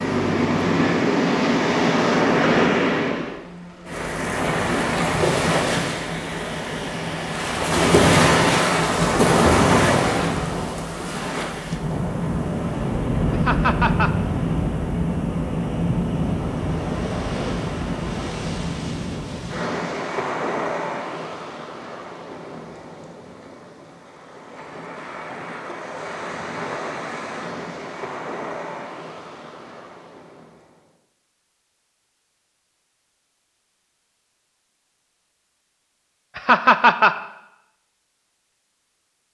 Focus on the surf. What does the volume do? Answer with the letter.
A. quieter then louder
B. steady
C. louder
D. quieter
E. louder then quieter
D.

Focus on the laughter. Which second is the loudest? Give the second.
37 s.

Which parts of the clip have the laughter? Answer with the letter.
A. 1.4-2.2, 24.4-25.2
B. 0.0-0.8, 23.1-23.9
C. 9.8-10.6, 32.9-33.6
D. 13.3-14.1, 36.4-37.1
D.